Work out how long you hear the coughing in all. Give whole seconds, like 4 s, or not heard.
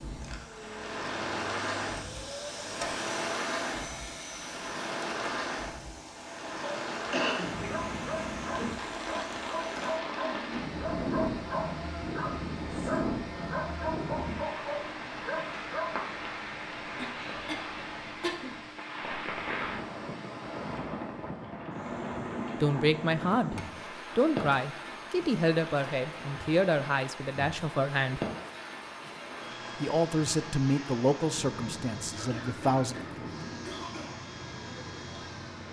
4 s.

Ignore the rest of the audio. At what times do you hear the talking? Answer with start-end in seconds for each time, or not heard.
22.6-23.6, 24.1-28.2, 29.8-33.0.